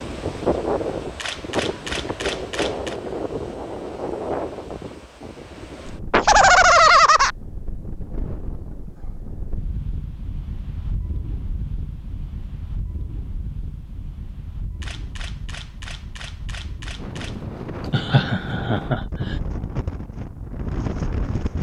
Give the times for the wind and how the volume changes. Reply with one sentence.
The wind can be heard from 0.0 to 21.5 s, getting quieter then louder.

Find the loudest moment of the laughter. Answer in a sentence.
The volume of the laughter peaks at 7 seconds.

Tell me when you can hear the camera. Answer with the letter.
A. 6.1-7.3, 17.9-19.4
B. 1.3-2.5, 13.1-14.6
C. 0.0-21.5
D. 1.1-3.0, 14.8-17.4
D.